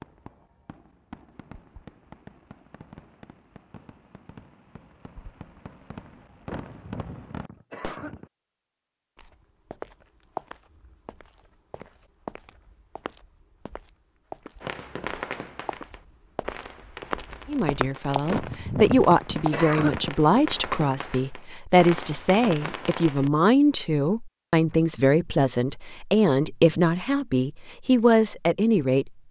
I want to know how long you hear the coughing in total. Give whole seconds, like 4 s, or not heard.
4 s.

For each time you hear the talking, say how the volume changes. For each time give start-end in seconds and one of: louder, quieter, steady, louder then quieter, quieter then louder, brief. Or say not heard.
17.4-29.2 steady.